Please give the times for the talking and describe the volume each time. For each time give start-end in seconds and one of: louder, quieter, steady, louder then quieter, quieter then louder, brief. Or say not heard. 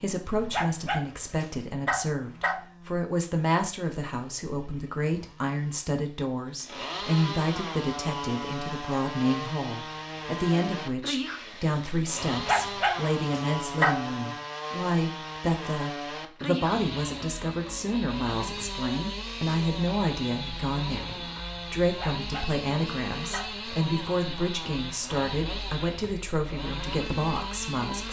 0.0-28.0 steady.